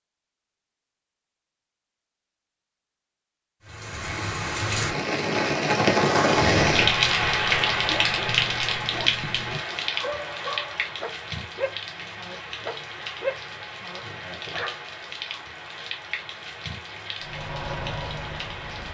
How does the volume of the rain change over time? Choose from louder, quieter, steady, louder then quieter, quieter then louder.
quieter.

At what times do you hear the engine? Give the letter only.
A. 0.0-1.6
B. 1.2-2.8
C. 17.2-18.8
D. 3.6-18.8
C.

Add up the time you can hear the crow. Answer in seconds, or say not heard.
not heard.